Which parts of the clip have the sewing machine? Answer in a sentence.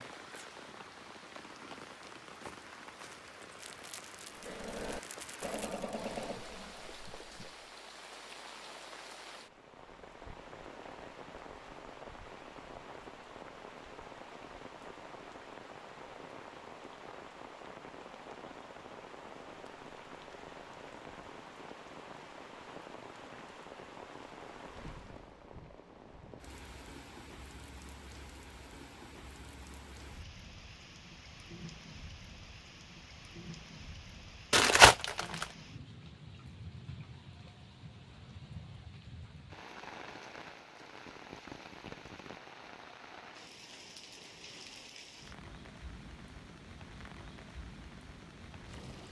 You can hear the sewing machine from 4.3 to 7.7 s.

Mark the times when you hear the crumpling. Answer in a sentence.
The crumpling can be heard from 3.6 to 5.8 s and from 34.5 to 35.5 s.